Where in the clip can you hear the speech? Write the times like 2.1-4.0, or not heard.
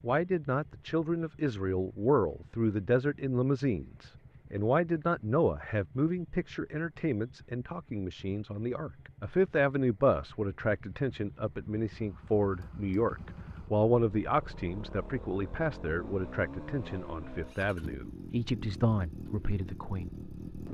0.0-20.6.